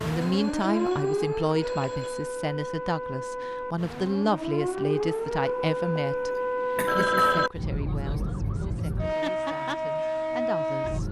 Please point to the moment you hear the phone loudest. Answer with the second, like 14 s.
7 s.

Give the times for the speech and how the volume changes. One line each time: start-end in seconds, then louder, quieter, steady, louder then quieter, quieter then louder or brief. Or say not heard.
0.1-11.0 quieter.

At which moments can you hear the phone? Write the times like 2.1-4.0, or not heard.
0.2-2.3, 6.8-7.5.